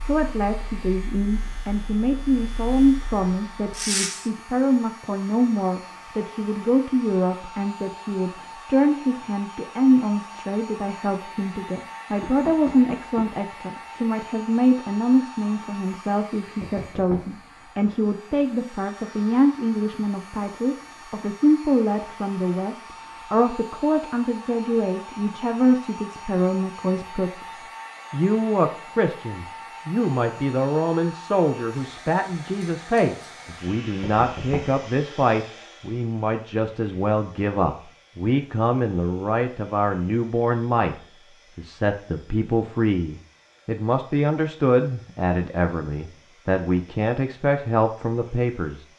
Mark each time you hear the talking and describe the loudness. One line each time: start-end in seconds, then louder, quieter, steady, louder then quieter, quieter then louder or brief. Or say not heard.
0.0-41.0 steady
41.5-48.9 steady.